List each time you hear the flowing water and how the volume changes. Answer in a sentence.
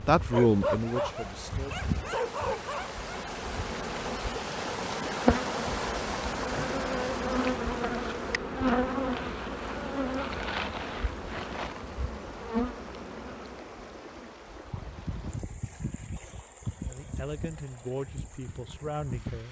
You can hear the flowing water from 0.0 to 19.4 s, getting louder then quieter.